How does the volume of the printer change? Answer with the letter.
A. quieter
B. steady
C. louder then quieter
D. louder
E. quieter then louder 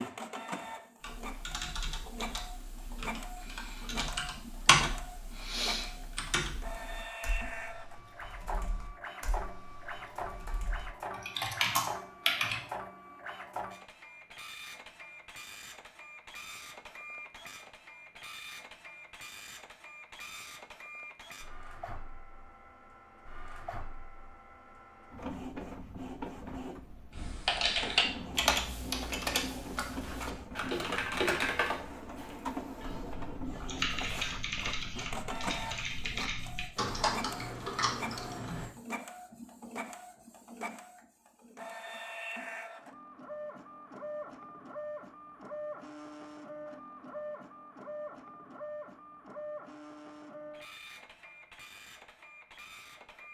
B.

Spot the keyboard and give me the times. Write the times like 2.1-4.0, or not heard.
1.0-12.6, 27.1-38.7.